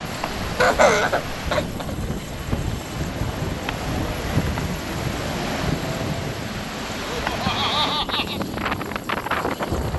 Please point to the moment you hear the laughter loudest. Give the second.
1 s.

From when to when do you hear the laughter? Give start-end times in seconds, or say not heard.
0.4-1.9, 7.0-8.4.